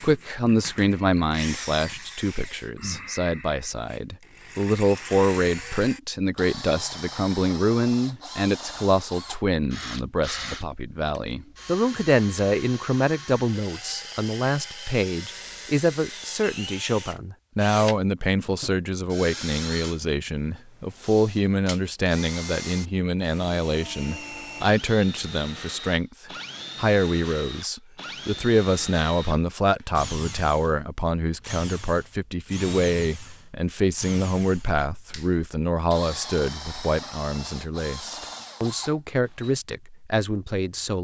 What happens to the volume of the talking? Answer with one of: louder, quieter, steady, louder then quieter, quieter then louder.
steady.